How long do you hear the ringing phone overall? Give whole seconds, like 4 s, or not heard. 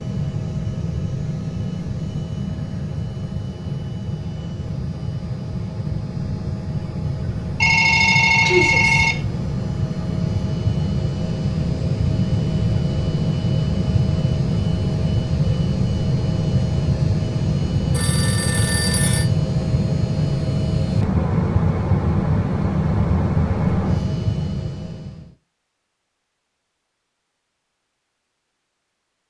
3 s.